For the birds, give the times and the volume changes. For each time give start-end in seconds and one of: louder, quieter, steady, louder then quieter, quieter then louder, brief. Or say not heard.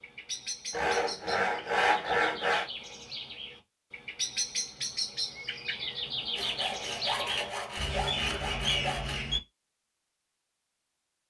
0.0-9.4 louder.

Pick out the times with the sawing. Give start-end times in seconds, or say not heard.
0.7-2.7, 6.3-9.2.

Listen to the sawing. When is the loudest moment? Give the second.
2 s.